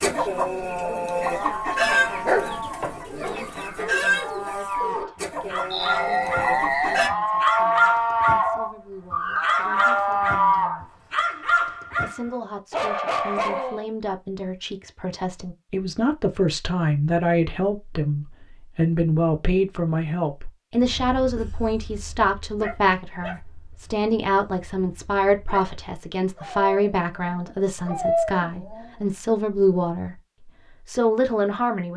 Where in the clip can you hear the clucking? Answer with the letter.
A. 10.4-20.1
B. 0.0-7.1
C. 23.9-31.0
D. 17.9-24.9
B.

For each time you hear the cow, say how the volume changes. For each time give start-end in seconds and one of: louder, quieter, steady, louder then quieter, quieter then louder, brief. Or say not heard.
1.2-10.8 louder.